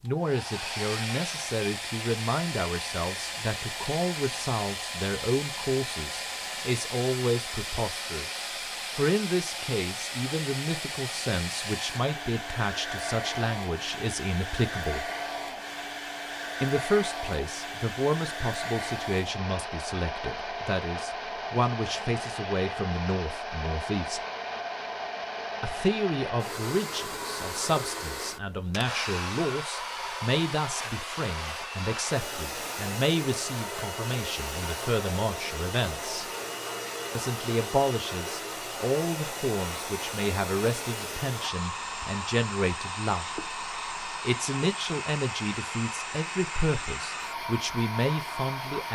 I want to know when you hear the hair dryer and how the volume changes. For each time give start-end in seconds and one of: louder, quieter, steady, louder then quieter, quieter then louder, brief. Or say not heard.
0.1-48.9 steady.